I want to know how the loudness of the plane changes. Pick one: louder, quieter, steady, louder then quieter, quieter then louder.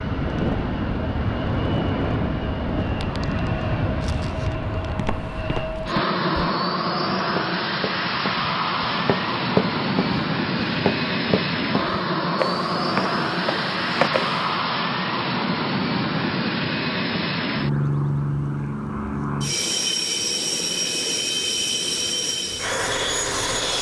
steady.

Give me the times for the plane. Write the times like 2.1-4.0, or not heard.
0.0-23.7.